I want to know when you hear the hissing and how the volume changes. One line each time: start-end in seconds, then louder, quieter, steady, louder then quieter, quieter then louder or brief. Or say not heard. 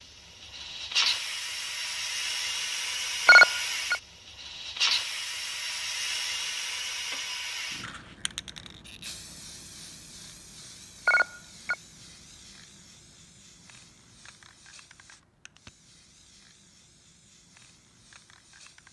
0.0-18.8 quieter.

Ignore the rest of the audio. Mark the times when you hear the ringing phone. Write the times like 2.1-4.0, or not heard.
3.2-4.0, 11.1-11.8.